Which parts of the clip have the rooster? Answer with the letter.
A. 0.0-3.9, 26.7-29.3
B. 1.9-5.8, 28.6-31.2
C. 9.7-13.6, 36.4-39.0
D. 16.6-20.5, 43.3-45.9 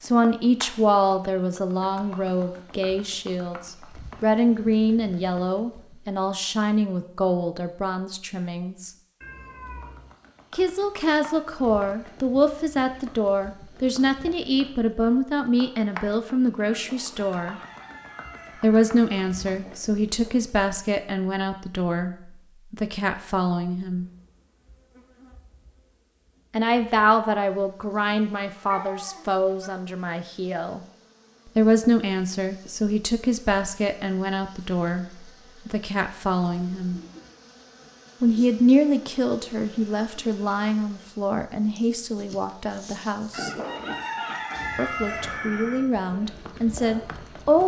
D.